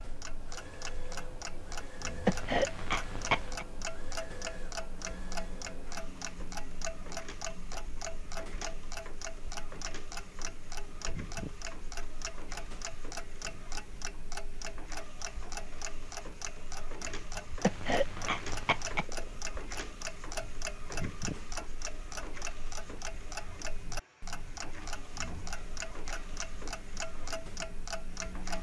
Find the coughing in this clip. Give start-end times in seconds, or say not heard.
2.2-3.6, 17.6-19.1.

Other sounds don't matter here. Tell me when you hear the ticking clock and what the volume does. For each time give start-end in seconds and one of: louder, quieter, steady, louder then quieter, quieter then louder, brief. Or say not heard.
0.0-28.5 steady.